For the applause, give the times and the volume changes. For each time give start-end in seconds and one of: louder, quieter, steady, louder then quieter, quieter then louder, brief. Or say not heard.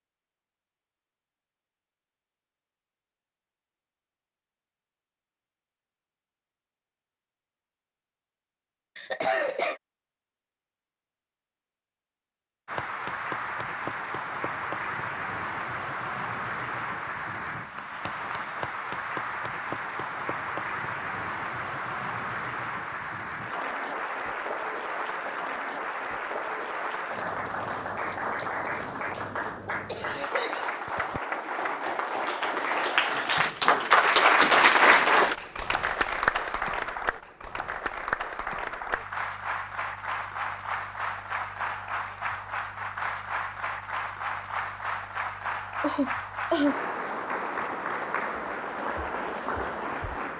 12.7-50.3 louder then quieter.